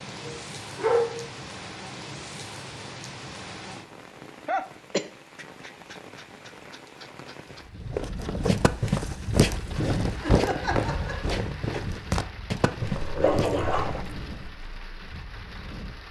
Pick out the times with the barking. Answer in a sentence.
You can hear the barking from 0.2 to 1.2 s and from 12.9 to 14.5 s.